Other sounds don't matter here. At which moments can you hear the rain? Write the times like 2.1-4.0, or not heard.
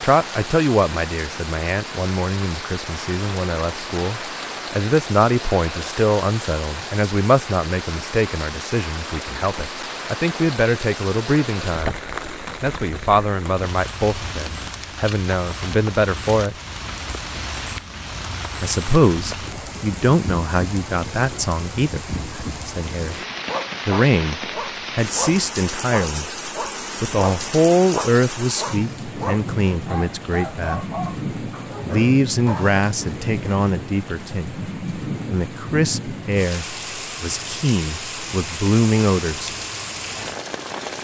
0.0-40.9.